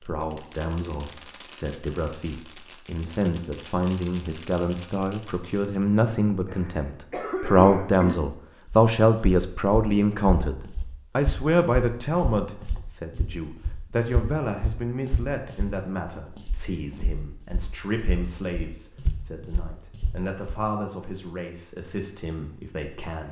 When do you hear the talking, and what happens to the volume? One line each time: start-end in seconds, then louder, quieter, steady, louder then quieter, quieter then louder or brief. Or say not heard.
0.0-23.2 louder then quieter.